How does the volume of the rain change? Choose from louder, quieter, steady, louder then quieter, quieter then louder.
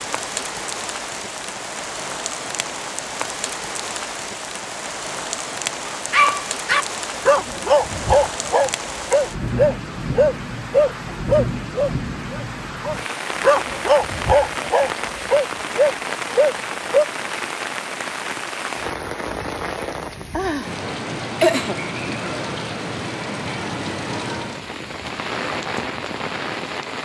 steady.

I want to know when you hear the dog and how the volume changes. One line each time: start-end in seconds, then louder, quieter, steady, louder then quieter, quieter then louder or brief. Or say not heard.
5.9-17.1 steady.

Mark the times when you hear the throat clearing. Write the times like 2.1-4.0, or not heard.
21.4-22.4.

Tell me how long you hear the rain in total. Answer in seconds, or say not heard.
27 s.